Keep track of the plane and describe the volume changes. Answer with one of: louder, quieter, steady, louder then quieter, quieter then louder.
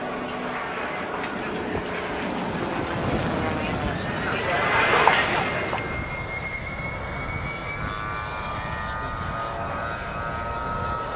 steady.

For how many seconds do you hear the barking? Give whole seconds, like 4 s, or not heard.
not heard.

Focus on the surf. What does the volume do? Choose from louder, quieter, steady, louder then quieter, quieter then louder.
quieter.